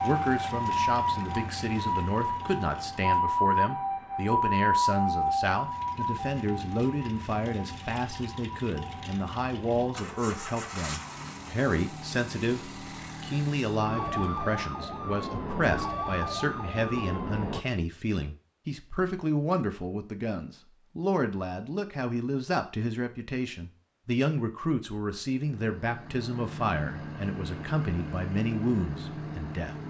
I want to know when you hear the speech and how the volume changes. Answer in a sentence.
The speech can be heard from 0.0 to 29.8 s, at a steady volume.